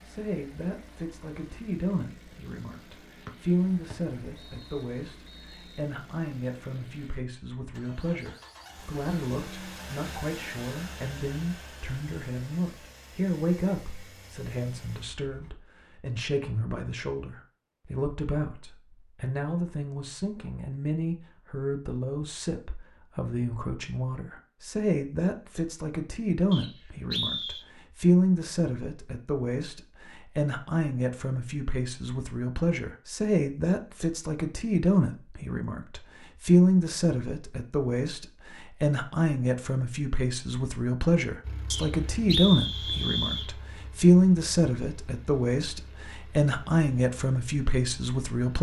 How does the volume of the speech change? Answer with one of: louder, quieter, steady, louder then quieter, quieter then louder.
louder.